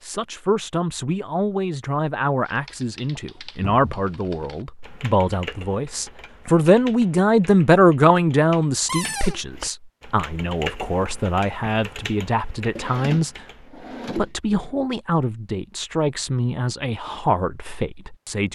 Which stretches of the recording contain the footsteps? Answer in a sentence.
The footsteps can't be heard in this clip.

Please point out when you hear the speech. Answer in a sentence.
The speech can be heard from 0.0 to 18.5 s.